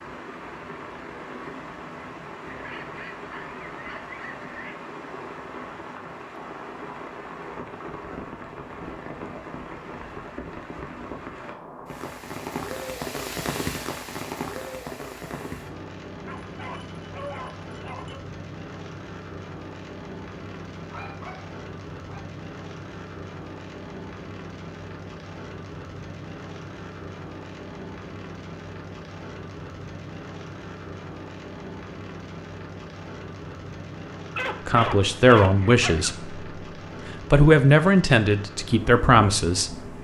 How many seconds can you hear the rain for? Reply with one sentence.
You can hear the rain for 40 seconds altogether.